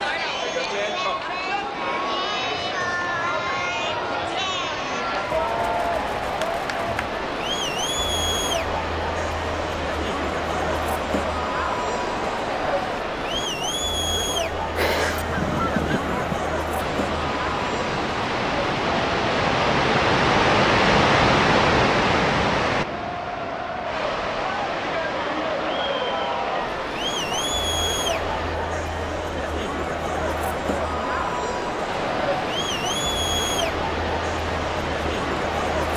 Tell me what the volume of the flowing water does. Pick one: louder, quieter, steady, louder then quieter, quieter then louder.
louder then quieter.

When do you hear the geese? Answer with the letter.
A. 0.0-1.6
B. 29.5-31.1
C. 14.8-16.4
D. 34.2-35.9
C.